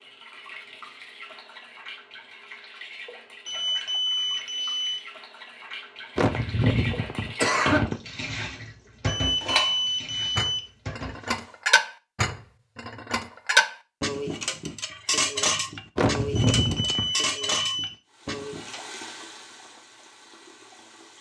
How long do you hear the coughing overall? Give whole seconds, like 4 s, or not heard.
3 s.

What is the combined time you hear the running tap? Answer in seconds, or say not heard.
15 s.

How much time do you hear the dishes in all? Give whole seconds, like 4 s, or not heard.
10 s.